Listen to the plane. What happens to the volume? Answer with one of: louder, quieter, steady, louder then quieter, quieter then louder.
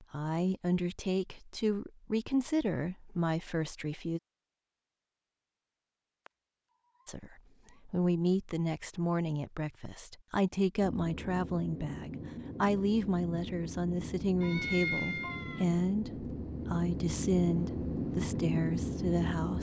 louder.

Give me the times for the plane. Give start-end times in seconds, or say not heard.
10.8-19.5.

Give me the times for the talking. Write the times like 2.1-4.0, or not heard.
0.0-4.2, 7.0-19.5.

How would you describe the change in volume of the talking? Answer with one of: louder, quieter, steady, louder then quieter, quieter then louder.
steady.